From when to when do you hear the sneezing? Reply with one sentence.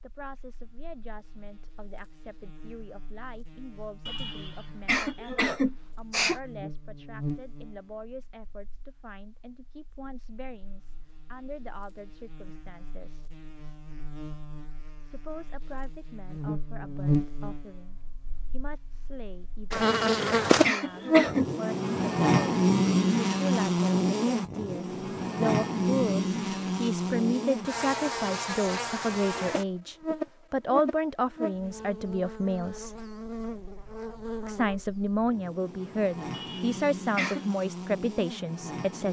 You can hear the sneezing from 4.0 to 6.4 s, from 19.8 to 21.5 s and from 36.3 to 37.5 s.